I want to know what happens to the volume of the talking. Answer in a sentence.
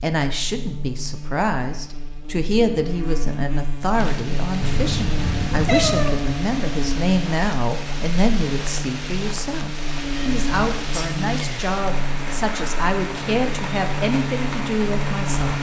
The volume of the talking stays about the same.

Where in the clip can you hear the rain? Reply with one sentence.
The rain can be heard from 3.9 to 15.5 s.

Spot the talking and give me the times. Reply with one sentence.
You can hear the talking from 0.0 to 15.5 s.